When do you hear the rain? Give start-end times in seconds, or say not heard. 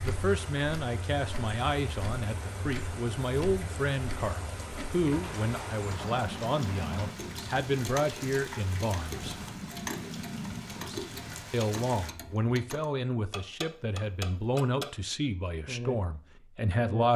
0.0-12.2.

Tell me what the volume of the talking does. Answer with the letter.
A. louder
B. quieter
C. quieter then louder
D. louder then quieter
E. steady
E.